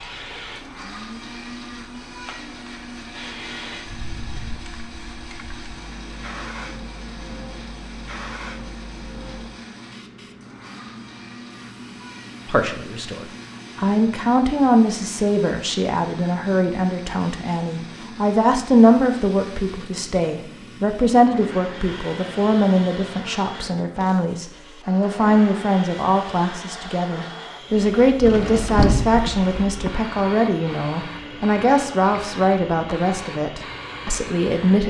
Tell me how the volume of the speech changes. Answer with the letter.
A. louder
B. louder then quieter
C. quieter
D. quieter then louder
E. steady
E.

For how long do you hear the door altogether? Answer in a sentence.
You can hear the door for 2 seconds altogether.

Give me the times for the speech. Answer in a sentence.
The speech can be heard from 12.4 to 34.8 s.